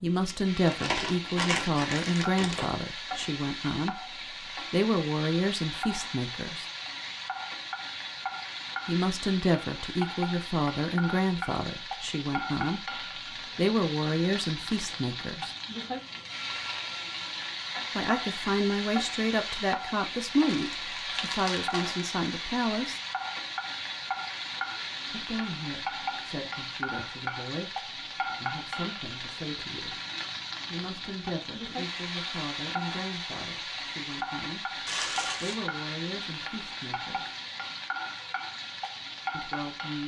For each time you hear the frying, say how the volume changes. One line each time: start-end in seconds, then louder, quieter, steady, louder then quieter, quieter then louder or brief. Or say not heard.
0.0-40.0 steady.